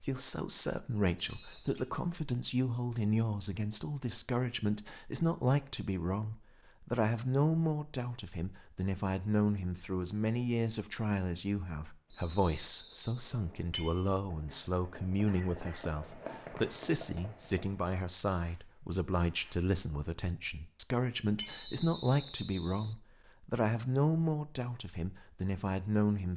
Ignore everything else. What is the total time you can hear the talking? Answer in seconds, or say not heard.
26 s.